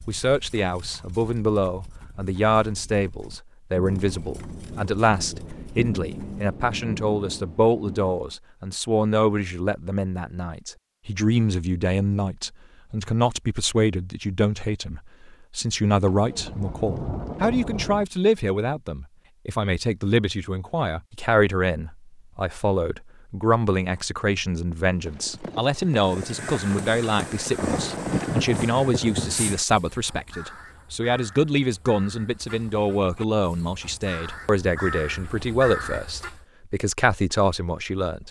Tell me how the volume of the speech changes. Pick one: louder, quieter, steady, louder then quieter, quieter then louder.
steady.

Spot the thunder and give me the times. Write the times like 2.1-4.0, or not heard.
3.8-8.3, 16.1-18.1, 27.6-29.6.